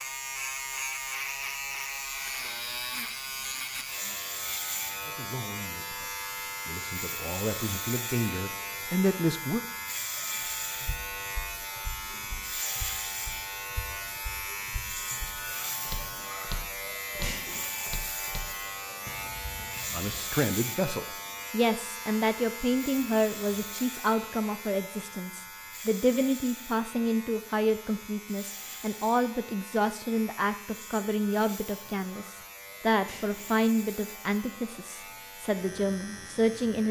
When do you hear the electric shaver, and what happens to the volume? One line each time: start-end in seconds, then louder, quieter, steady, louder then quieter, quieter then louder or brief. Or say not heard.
0.0-36.8 quieter.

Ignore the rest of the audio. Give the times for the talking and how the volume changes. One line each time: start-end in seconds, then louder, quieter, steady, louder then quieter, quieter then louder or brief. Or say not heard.
5.0-9.6 louder
19.9-36.8 steady.